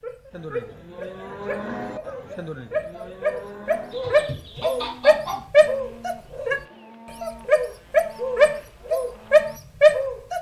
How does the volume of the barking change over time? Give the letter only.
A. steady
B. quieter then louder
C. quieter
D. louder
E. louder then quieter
D.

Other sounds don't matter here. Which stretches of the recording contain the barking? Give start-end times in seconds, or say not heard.
0.0-6.5, 7.2-10.3.